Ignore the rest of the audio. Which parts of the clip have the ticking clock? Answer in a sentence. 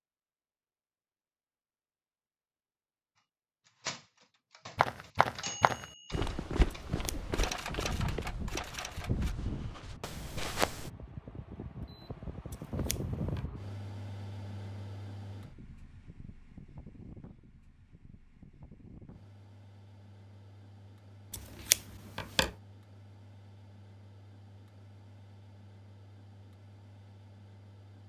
The ticking clock can't be heard in this clip.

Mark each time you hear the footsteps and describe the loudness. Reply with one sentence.
The footsteps can be heard from 4.8 to 10.9 s, getting quieter.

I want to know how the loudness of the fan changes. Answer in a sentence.
The volume of the fan goes down.